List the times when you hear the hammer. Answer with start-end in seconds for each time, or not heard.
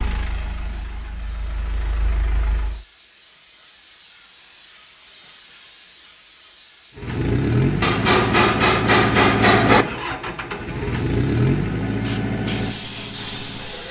7.8-9.8.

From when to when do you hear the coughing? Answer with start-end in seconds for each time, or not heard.
not heard.